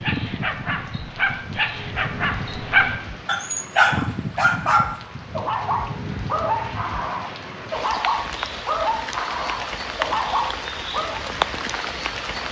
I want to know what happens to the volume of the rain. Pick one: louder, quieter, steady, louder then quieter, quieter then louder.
louder.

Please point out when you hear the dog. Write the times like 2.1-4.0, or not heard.
0.0-11.2.